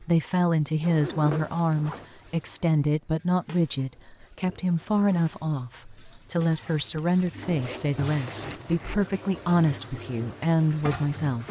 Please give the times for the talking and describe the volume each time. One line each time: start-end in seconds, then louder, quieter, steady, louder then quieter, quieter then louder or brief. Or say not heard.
0.0-11.4 steady.